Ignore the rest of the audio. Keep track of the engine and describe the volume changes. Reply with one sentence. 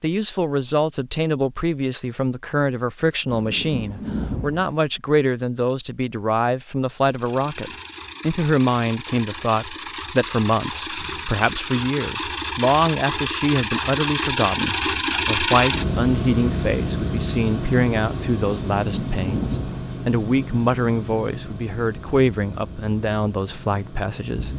The loudness of the engine goes up, then down.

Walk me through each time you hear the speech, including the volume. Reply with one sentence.
The speech can be heard from 0.0 to 24.5 s, at a steady volume.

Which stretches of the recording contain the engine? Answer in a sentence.
The engine can be heard from 7.0 to 24.5 s.